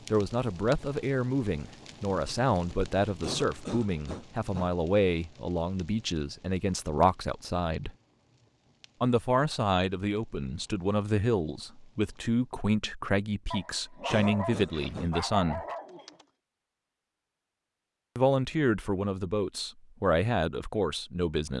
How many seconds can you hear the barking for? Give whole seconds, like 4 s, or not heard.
3 s.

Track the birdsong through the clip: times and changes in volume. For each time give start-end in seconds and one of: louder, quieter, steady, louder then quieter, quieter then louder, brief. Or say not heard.
not heard.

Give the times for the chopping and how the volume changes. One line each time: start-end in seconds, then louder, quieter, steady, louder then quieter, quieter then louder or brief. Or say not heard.
not heard.